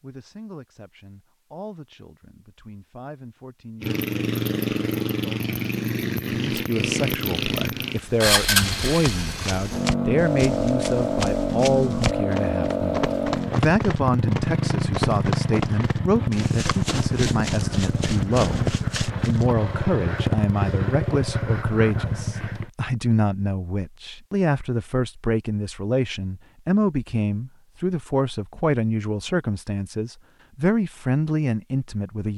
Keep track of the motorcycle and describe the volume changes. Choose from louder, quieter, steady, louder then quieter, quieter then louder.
steady.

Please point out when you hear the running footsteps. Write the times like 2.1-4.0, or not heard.
8.4-19.4.